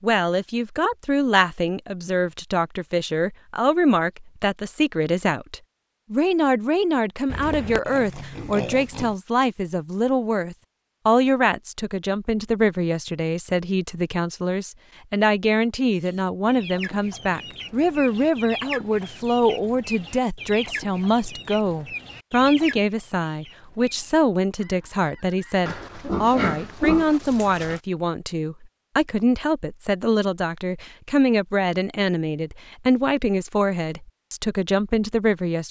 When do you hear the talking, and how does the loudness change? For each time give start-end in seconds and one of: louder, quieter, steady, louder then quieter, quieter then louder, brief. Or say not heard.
0.0-35.6 steady.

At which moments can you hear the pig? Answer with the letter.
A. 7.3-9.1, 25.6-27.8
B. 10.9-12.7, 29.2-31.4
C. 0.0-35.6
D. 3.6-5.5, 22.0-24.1
A.